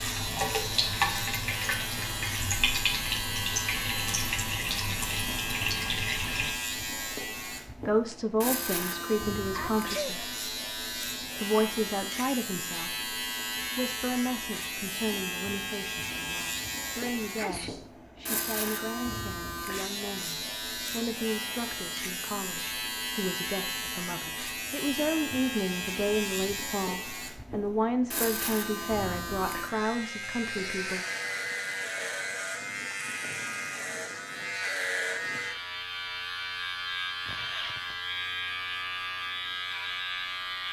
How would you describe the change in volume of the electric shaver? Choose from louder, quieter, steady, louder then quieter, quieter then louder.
steady.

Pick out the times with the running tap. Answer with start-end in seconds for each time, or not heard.
0.0-6.5.